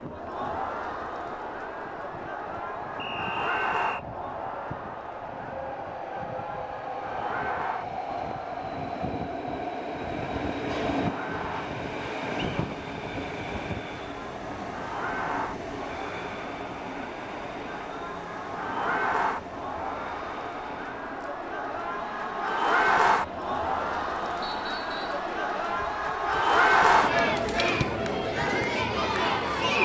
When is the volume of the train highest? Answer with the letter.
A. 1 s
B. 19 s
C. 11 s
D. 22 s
C.